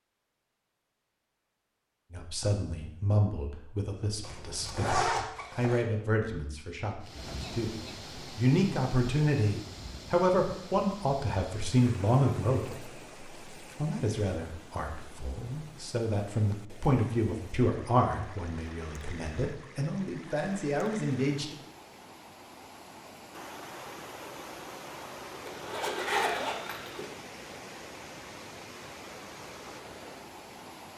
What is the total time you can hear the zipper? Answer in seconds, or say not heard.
3 s.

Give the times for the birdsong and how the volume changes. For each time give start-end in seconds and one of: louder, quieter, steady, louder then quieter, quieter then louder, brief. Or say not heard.
not heard.